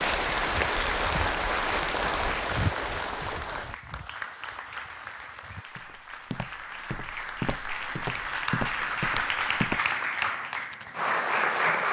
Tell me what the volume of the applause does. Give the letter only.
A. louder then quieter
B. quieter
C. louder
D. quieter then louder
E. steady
D.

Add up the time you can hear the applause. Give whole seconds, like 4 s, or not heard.
12 s.